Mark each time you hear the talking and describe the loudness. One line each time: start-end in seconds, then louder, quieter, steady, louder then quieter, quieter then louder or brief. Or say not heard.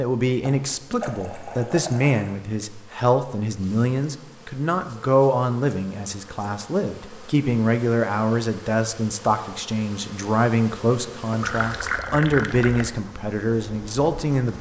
0.0-14.5 steady.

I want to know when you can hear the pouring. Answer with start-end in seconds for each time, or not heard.
0.4-2.4, 11.4-12.9.